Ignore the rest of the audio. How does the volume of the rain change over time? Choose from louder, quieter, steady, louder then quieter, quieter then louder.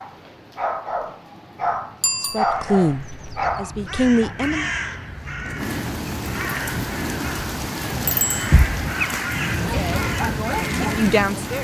louder.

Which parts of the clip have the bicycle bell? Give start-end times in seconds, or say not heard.
2.0-2.5, 8.1-8.6.